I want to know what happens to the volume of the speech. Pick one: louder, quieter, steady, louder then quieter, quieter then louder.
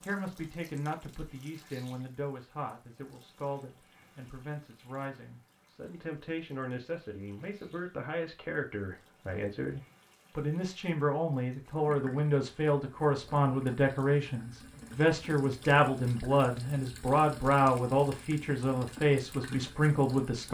louder.